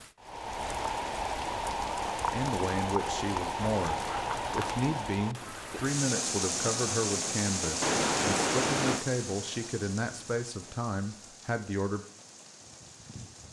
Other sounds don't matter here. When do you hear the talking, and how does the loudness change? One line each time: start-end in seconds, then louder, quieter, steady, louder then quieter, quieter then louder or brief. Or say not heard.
2.2-12.1 steady.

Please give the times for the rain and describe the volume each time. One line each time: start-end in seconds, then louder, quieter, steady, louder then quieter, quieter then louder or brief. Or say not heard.
0.0-13.4 quieter.